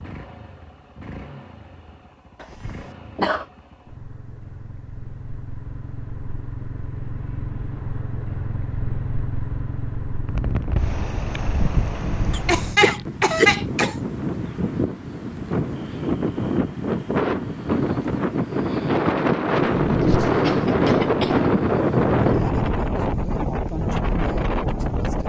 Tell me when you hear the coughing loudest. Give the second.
13 s.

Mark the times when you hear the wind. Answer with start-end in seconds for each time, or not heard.
10.2-25.2.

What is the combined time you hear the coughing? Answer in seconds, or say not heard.
4 s.